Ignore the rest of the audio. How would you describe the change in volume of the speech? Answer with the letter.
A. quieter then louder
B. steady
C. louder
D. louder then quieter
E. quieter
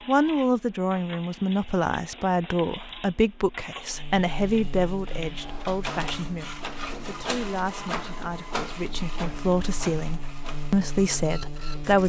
A.